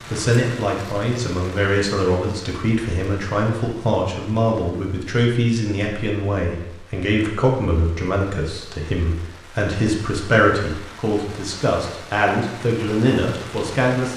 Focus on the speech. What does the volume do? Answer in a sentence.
The loudness of the speech stays about the same.